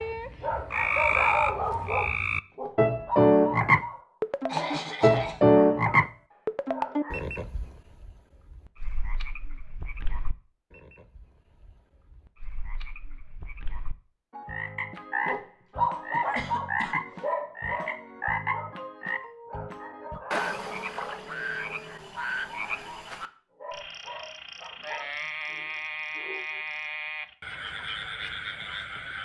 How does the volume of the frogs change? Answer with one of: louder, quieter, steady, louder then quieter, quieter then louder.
quieter.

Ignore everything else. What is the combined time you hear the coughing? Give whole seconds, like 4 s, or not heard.
2 s.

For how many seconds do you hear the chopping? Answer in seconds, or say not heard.
not heard.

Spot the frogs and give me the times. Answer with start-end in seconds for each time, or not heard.
0.0-29.2.